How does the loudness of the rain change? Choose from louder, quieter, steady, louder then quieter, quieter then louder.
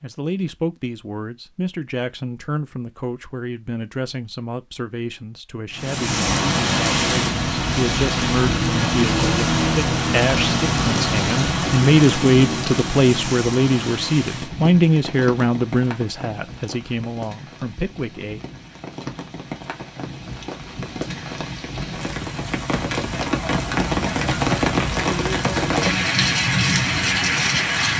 quieter then louder.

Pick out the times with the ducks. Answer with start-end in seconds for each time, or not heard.
not heard.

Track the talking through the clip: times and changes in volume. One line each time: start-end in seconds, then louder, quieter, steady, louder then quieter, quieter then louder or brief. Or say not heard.
0.0-18.4 louder.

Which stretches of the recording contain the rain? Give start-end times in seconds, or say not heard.
5.8-27.9.